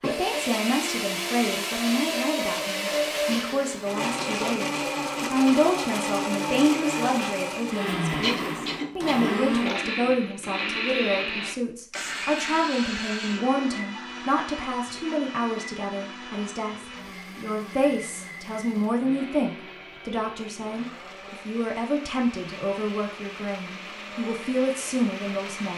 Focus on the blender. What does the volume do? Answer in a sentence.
The loudness of the blender goes down.